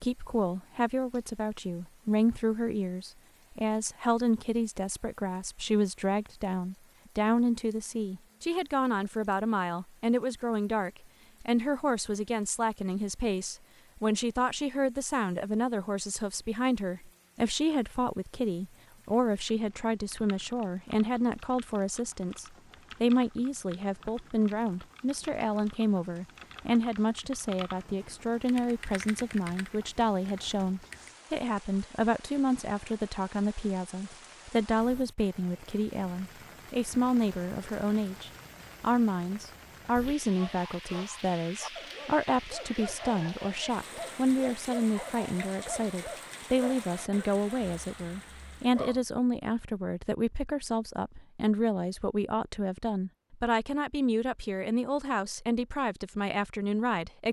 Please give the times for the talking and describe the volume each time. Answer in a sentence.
The talking can be heard from 0.0 to 57.2 s, at a steady volume.